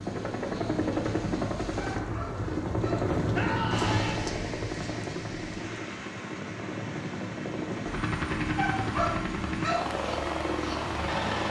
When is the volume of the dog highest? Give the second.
9 s.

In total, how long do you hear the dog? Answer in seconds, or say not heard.
3 s.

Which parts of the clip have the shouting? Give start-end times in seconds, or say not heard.
3.3-4.2.